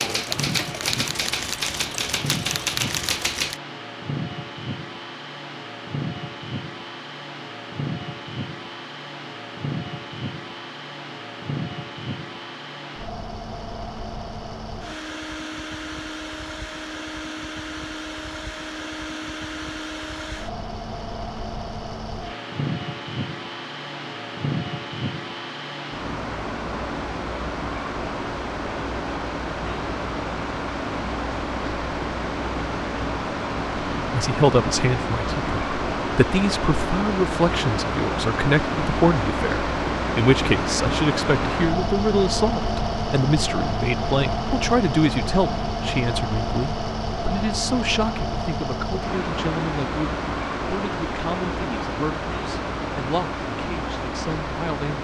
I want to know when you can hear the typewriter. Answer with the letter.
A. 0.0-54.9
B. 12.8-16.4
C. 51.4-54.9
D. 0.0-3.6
D.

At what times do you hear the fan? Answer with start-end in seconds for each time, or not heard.
0.0-54.9.